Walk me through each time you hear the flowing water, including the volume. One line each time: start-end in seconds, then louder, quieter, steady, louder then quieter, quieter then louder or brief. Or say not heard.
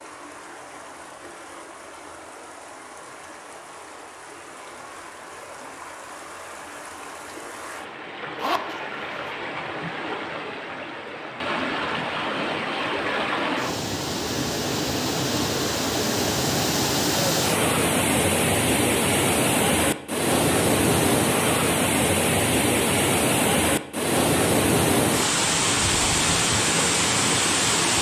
0.0-27.9 louder.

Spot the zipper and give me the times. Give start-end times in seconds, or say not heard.
8.3-9.3.